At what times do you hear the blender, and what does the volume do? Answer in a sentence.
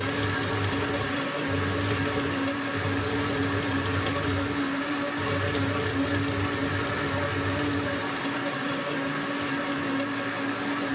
The blender can be heard from 0.0 to 10.9 s, at a steady volume.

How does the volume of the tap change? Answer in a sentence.
The volume of the tap stays about the same.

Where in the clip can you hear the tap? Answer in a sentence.
You can hear the tap from 0.0 to 8.1 s.